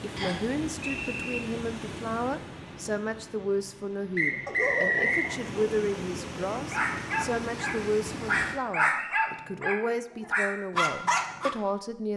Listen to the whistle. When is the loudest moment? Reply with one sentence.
The volume of the whistle peaks at 5 seconds.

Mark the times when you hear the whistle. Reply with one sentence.
The whistle can be heard from 0.1 to 1.4 s, from 4.2 to 5.3 s and from 8.2 to 9.2 s.